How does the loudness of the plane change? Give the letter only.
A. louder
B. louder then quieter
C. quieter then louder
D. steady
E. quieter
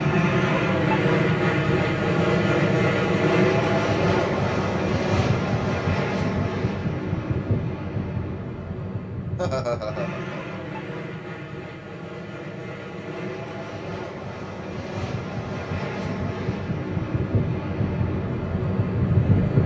C.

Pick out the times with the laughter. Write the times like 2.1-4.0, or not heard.
9.3-10.6.